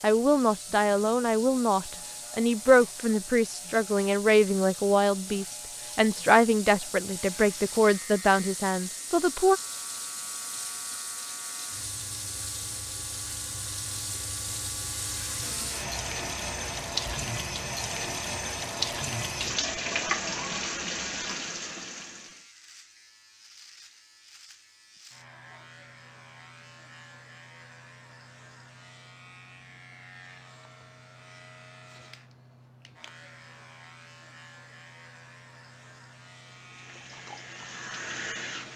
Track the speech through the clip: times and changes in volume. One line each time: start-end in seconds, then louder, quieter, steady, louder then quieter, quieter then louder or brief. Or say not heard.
0.0-9.6 steady.